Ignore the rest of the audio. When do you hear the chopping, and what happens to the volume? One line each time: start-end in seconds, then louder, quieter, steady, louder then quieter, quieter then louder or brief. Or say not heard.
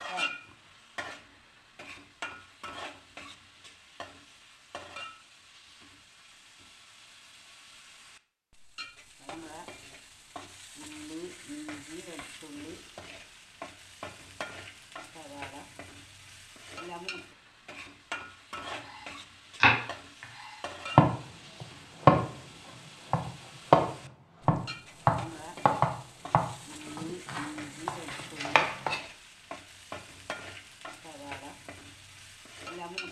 19.6-20.2 brief
20.9-22.3 brief
23.1-29.0 quieter then louder.